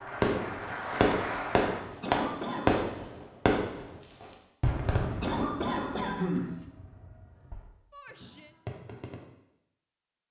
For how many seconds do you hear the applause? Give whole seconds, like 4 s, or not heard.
2 s.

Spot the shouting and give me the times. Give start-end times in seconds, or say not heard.
7.9-8.6.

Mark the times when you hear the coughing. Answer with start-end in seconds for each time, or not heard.
2.0-2.9, 5.2-6.6.